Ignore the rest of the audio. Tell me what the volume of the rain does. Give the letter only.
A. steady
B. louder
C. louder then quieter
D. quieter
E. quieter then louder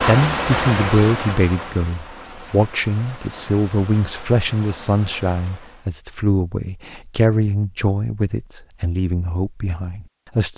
D.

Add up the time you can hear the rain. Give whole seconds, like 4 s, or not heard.
6 s.